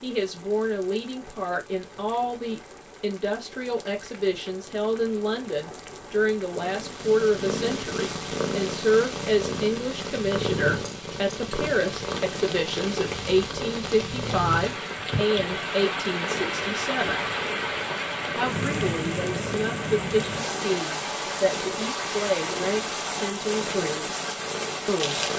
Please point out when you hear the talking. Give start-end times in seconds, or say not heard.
0.0-17.2, 18.4-24.2, 24.9-25.3.